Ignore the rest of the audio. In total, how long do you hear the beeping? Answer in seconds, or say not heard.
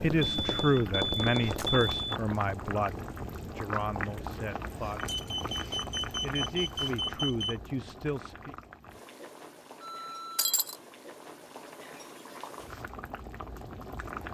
5 s.